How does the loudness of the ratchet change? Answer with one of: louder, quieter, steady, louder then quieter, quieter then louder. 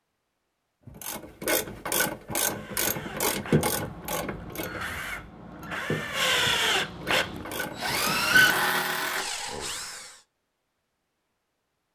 quieter.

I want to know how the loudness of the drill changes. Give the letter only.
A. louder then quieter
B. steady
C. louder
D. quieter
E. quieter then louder
C.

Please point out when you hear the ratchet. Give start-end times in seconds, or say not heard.
0.8-8.6.